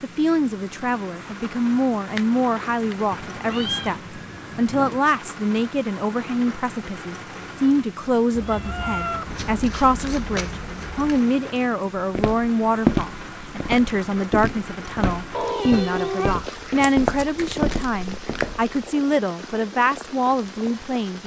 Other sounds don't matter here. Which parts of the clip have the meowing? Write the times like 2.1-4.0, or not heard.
3.1-5.0, 8.3-10.2, 15.3-16.4.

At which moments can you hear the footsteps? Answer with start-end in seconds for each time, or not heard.
11.9-18.8.